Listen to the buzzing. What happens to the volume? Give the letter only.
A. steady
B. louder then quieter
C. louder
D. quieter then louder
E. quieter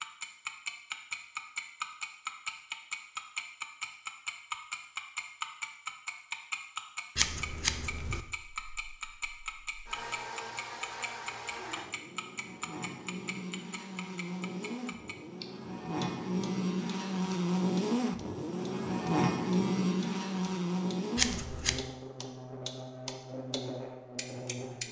B.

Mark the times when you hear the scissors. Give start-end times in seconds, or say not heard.
7.2-8.2, 21.1-21.9.